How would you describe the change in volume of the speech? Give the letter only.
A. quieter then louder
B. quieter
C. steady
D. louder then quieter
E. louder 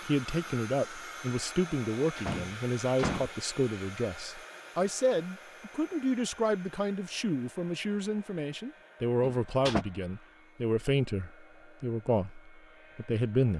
C.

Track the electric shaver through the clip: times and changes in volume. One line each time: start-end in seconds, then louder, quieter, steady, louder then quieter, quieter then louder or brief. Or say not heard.
not heard.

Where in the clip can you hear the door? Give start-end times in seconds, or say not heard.
2.1-3.3, 9.2-9.8.